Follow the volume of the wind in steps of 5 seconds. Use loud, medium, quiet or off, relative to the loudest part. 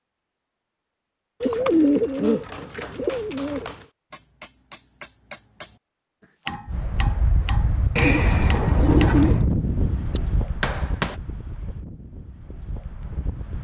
off, loud, medium.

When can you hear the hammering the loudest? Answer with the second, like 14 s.
11 s.